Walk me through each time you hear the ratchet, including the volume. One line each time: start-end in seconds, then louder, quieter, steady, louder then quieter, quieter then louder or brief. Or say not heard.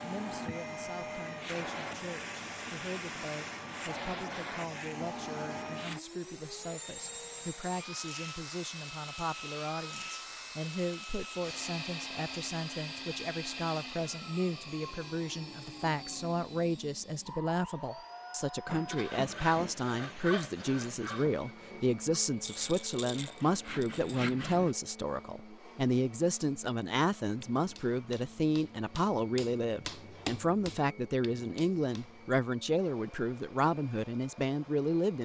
not heard.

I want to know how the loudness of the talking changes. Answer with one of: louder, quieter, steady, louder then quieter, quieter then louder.
louder.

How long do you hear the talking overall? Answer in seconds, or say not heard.
35 s.